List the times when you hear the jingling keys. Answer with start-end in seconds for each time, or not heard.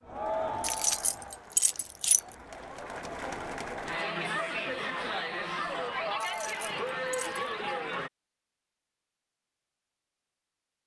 0.6-2.2, 6.2-7.5.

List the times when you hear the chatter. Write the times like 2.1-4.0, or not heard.
0.0-8.1.